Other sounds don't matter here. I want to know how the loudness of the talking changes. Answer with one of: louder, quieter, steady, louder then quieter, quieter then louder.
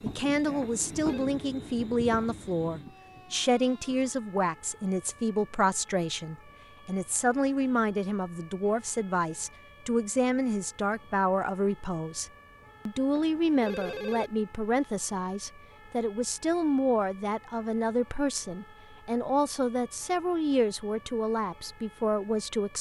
steady.